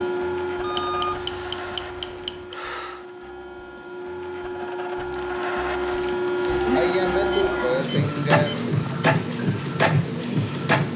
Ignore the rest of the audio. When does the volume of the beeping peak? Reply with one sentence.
The volume of the beeping peaks at 1 second.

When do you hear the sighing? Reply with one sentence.
You can hear the sighing from 1.1 to 3.0 s and from 6.5 to 8.8 s.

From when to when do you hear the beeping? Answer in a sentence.
The beeping can be heard from 0.6 to 2.3 s and from 7.3 to 9.2 s.